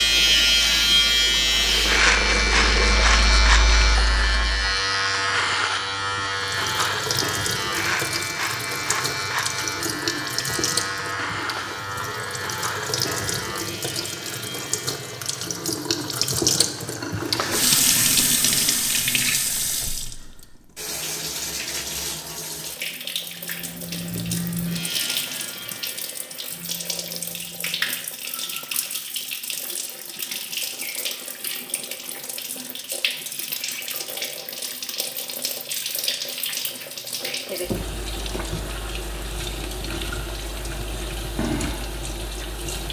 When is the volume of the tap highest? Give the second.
18 s.